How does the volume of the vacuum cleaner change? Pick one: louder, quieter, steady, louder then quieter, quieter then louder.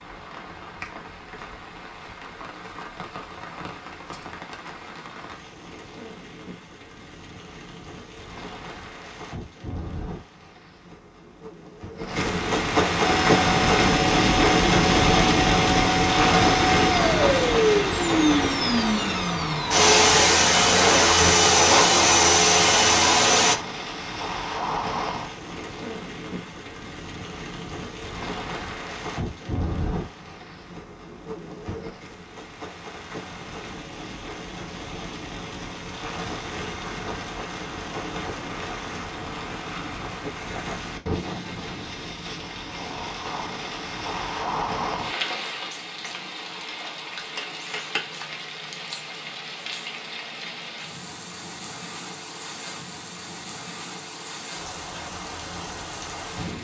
louder.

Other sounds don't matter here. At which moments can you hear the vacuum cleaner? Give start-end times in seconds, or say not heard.
13.0-23.6.